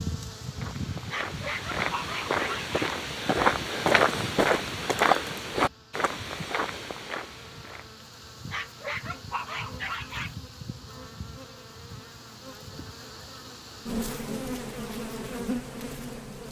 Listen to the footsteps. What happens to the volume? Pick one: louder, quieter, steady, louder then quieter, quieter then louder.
louder then quieter.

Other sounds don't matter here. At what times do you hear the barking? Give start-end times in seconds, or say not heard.
1.1-3.0, 8.5-10.3.